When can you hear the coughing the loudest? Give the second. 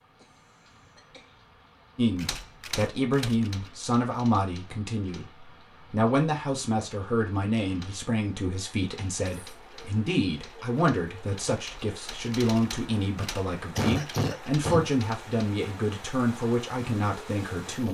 14 s.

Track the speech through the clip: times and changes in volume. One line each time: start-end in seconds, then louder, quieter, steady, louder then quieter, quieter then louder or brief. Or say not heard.
1.9-17.8 steady.